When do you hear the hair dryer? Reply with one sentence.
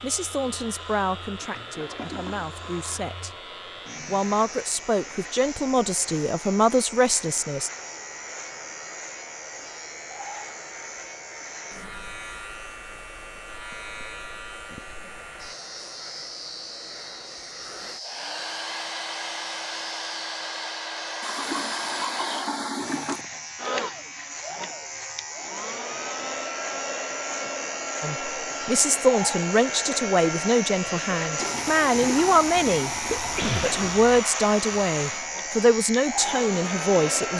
You can hear the hair dryer from 0.0 to 37.3 s.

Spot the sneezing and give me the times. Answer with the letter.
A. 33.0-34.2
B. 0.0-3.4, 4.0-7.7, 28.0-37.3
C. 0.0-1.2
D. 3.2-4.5
A.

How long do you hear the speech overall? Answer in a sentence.
You can hear the speech for 16 seconds altogether.